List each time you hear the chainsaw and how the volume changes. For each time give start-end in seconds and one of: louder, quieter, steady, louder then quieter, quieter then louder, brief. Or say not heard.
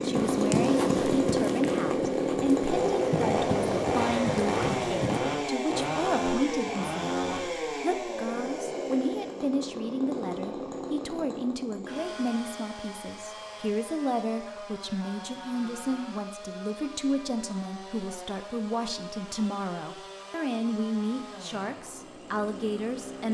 0.0-23.2 quieter.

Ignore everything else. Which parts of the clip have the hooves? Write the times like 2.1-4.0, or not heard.
0.1-5.2.